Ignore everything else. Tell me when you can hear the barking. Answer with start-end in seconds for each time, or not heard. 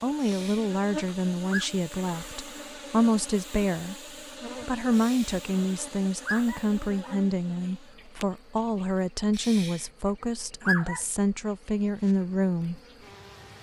0.2-1.7, 5.0-7.2, 9.3-11.1.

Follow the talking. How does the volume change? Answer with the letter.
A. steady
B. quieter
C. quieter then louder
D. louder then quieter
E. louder
A.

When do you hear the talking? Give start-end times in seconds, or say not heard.
0.0-4.0, 4.7-12.8.